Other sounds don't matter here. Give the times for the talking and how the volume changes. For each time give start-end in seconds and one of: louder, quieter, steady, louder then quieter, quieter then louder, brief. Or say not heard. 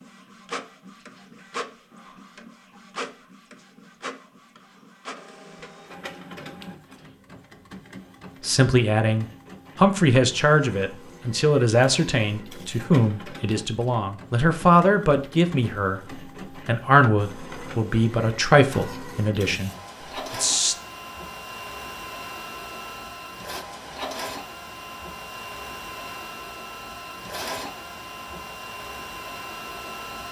8.4-19.7 steady
20.3-20.8 brief.